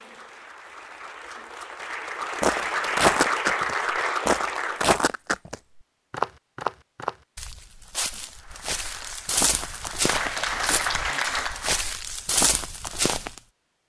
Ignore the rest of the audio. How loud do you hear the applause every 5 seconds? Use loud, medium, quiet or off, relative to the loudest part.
loud, quiet, loud.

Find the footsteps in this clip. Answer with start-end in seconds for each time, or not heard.
2.4-13.4.